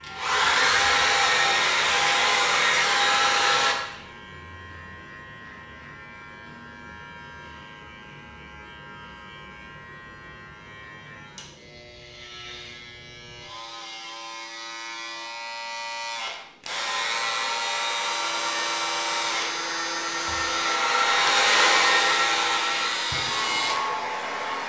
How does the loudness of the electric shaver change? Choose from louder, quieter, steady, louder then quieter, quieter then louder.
louder.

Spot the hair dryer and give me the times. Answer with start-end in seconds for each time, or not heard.
0.0-3.8, 16.6-24.6.